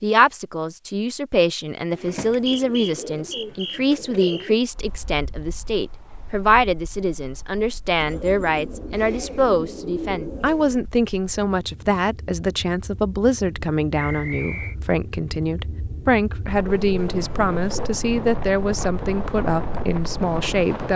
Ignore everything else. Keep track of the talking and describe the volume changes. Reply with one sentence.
The loudness of the talking stays about the same.